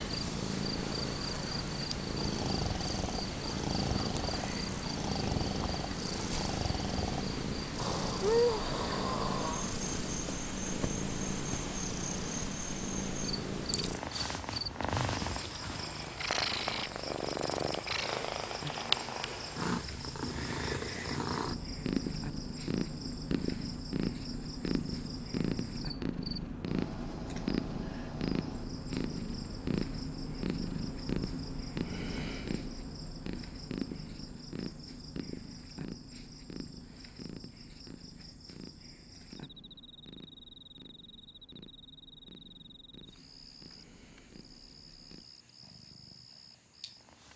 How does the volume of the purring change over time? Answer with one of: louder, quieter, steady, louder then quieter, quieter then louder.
quieter.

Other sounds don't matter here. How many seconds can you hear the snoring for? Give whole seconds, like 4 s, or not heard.
8 s.